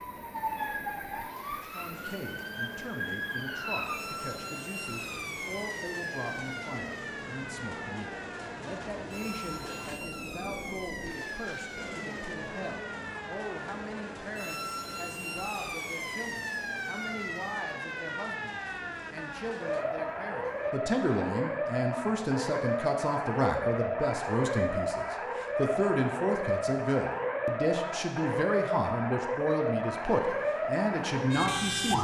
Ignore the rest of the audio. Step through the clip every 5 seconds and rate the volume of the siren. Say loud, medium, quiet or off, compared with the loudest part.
medium, medium, medium, medium, loud, loud, loud.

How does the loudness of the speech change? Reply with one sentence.
The volume of the speech goes up.